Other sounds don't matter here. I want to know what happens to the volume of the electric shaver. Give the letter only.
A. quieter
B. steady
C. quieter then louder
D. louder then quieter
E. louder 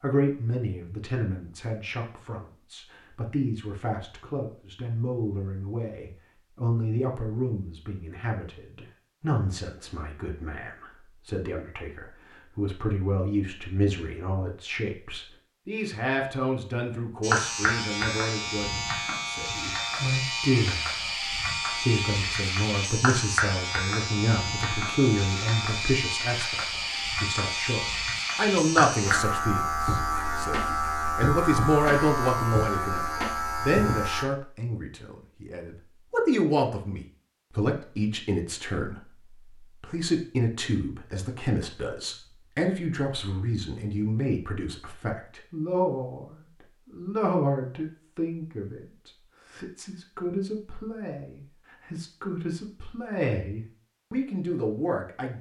B.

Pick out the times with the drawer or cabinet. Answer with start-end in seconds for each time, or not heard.
not heard.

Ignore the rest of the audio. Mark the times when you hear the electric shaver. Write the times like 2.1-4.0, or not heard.
17.2-34.2.